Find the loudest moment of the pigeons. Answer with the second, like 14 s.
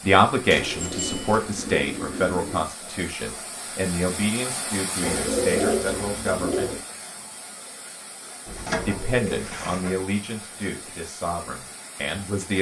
6 s.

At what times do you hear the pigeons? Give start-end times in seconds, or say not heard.
0.5-2.7, 5.0-6.8, 8.4-10.0.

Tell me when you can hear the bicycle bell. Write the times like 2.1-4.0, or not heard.
0.8-1.4.